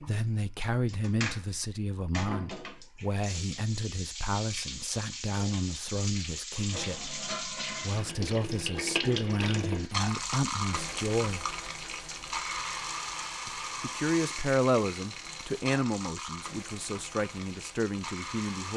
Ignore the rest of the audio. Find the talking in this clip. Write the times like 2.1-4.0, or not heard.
0.0-11.4, 13.4-18.7.